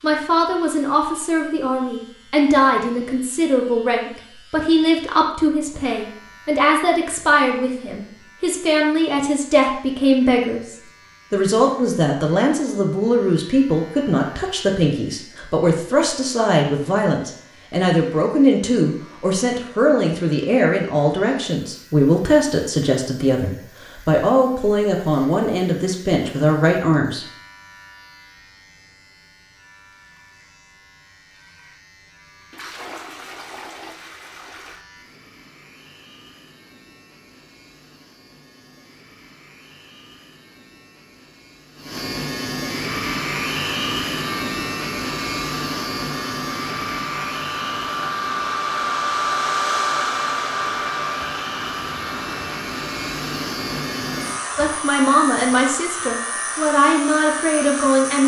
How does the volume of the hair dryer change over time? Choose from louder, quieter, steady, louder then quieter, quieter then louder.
louder then quieter.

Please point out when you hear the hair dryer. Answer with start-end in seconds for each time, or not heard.
42.9-58.0.